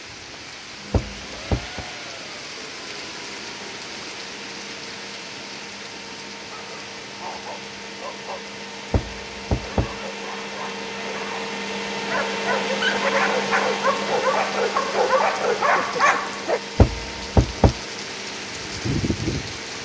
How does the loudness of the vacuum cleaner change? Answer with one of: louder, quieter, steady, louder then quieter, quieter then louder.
louder then quieter.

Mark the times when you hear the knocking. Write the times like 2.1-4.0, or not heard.
0.9-1.9, 8.9-10.1, 16.8-17.8.